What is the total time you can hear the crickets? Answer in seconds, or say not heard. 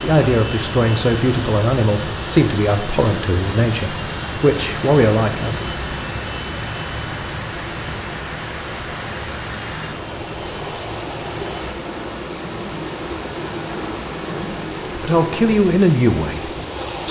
not heard.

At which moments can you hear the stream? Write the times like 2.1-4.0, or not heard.
0.0-17.0.